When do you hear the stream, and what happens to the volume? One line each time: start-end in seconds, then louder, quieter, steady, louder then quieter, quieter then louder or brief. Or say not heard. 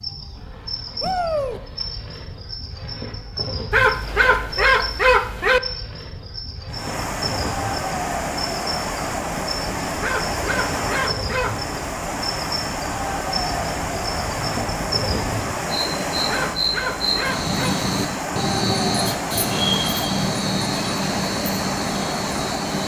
6.7-22.8 steady.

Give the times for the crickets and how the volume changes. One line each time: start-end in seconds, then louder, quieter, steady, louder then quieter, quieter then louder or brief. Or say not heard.
0.0-22.8 louder.